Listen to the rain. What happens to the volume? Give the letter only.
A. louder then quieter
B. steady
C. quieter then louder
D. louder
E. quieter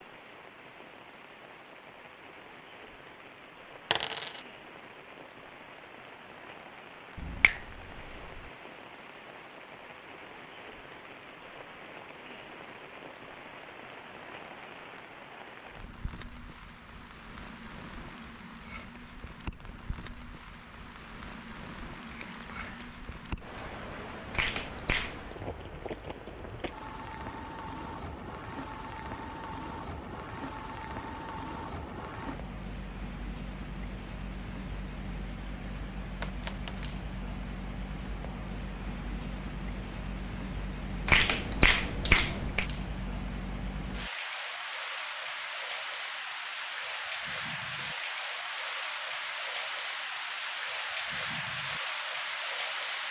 D.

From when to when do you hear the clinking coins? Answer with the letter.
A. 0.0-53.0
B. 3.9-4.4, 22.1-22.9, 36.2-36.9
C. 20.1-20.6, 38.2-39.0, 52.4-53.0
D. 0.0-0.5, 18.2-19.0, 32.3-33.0
B.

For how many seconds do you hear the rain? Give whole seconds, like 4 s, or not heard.
53 s.